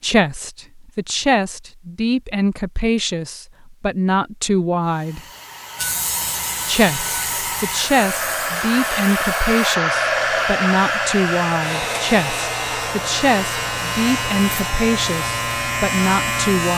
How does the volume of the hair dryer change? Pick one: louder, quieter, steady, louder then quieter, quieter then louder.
louder then quieter.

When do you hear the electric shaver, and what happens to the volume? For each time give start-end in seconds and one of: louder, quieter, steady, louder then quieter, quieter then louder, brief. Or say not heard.
5.8-16.7 quieter then louder.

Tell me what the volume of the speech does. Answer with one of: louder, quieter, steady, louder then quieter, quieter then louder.
steady.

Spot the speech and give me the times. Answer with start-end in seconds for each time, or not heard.
0.0-5.2, 6.7-16.7.